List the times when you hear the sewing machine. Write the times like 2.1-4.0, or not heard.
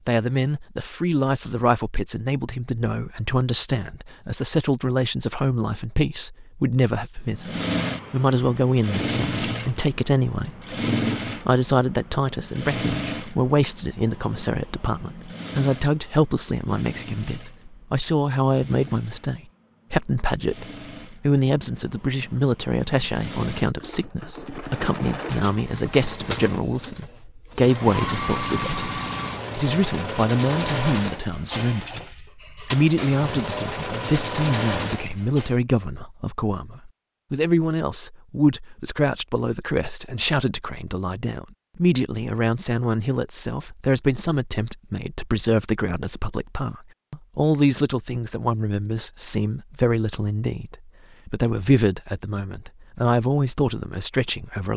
7.2-35.5.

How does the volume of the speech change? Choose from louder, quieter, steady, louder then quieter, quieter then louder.
steady.